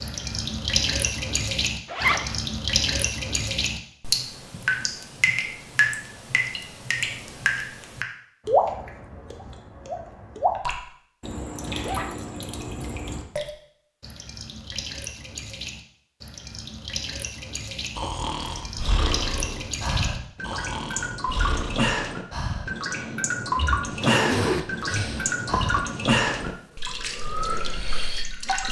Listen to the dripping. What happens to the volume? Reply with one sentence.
The loudness of the dripping goes down, then up.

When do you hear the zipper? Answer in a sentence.
The zipper can be heard from 1.9 to 2.4 s, from 11.6 to 12.1 s and from 24.0 to 25.9 s.